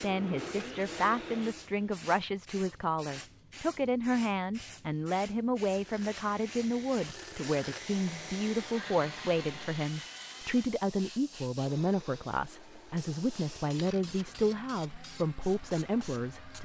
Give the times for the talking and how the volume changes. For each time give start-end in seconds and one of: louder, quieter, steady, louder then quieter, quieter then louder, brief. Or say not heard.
0.0-16.5 steady.